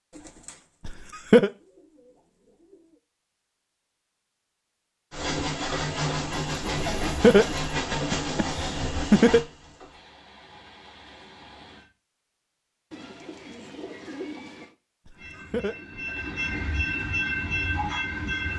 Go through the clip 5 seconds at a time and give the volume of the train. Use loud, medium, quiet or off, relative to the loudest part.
off, loud, quiet, loud.